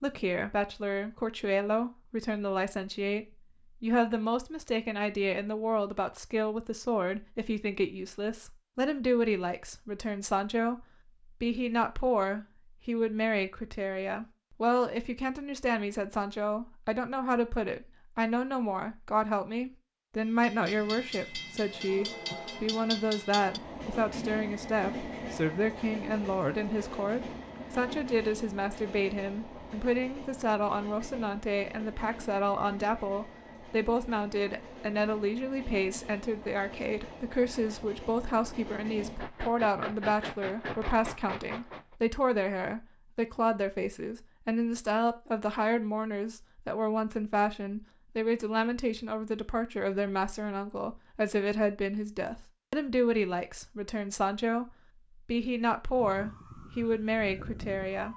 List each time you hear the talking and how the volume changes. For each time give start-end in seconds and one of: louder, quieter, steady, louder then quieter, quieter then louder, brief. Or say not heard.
0.0-58.1 steady.